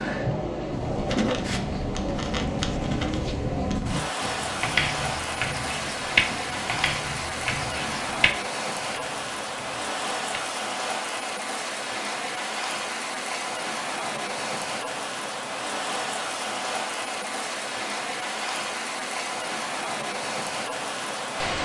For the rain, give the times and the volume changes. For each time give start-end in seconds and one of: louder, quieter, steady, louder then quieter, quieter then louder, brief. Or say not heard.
0.0-21.6 steady.